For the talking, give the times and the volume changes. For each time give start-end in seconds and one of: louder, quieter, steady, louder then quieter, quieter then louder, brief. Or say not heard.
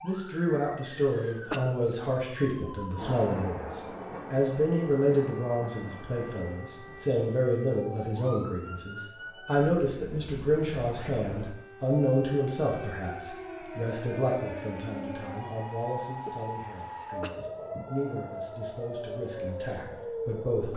0.0-20.7 quieter.